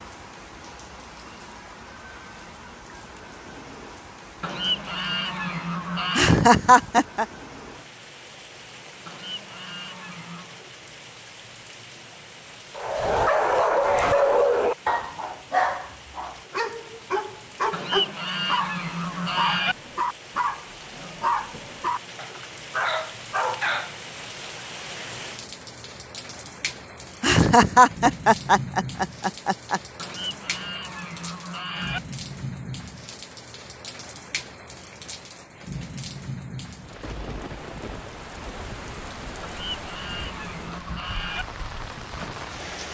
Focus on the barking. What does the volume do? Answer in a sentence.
The loudness of the barking goes down.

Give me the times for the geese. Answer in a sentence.
You can hear the geese from 4.4 to 6.4 s, from 9.1 to 10.6 s, from 17.7 to 19.8 s, from 29.9 to 32.0 s and from 39.4 to 41.5 s.